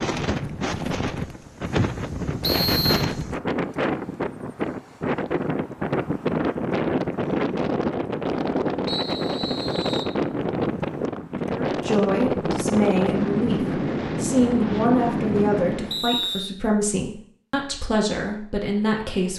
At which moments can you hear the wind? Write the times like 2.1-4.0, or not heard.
0.0-16.1.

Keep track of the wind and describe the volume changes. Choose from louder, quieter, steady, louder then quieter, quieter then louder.
steady.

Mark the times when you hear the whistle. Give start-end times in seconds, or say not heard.
2.4-3.0, 8.8-10.2, 15.9-16.5.